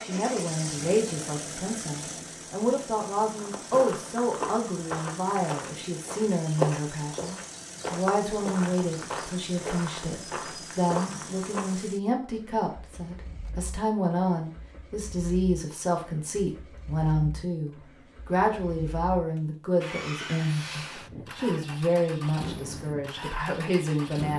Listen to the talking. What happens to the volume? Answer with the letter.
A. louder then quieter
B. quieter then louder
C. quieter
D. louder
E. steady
E.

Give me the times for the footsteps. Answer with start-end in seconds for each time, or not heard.
3.3-11.8.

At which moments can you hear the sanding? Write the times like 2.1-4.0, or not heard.
not heard.